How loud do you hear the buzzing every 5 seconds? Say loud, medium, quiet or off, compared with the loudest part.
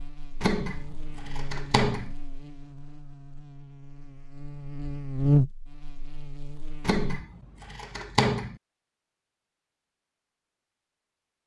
quiet, loud, off.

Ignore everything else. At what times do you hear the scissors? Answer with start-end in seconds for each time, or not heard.
0.4-2.1, 6.8-8.6.